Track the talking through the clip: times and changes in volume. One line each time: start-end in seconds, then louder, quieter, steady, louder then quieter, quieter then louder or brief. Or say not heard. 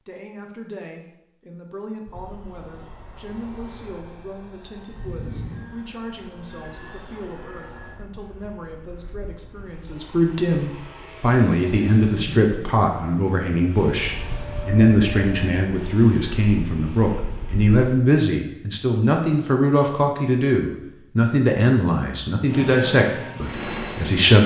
0.1-24.4 louder.